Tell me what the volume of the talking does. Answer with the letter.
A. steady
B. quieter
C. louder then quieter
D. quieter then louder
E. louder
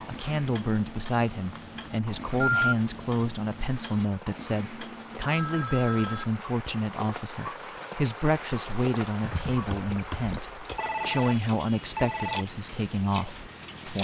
A.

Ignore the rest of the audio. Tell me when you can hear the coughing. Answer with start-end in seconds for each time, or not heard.
9.2-10.8.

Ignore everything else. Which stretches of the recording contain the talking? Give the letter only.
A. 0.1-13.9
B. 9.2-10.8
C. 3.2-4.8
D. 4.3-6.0
A.